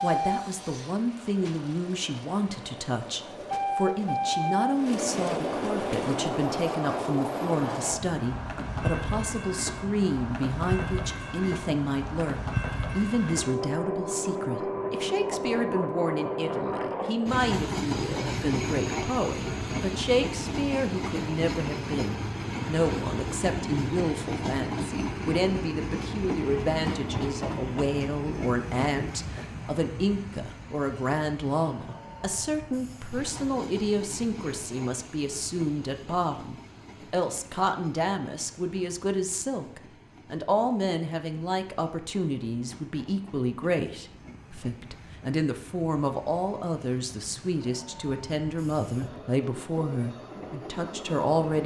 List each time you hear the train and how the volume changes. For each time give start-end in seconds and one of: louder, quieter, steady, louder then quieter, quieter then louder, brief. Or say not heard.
0.0-51.6 quieter.